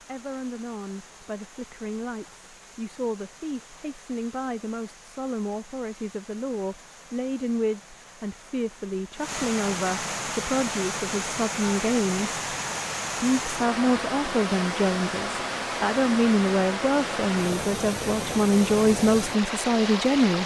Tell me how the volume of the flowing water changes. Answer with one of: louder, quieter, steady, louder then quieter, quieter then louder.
louder.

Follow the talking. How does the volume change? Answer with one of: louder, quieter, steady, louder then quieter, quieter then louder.
louder.